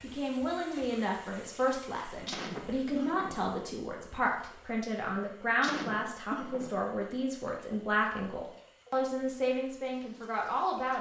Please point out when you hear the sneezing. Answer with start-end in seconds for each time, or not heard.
2.2-3.4, 5.6-6.7.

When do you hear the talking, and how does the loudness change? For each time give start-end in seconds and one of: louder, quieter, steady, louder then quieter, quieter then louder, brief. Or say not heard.
0.0-10.9 steady.